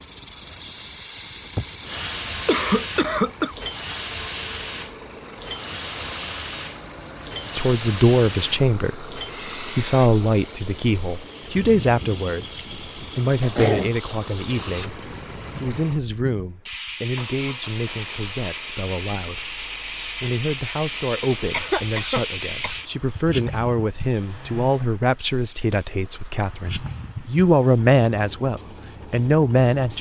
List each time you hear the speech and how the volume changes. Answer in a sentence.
The speech can be heard from 7.5 to 29.9 s, getting quieter then louder.